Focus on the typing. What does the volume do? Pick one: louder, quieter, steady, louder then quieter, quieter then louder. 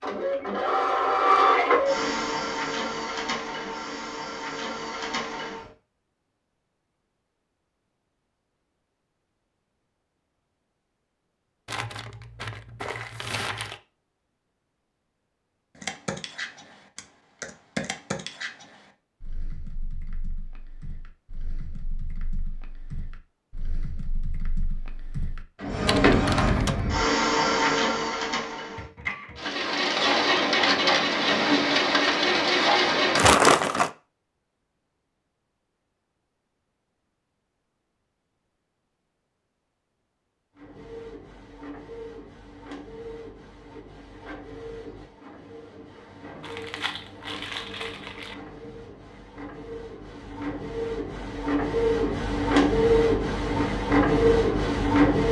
quieter then louder.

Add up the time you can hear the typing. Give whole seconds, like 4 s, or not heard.
11 s.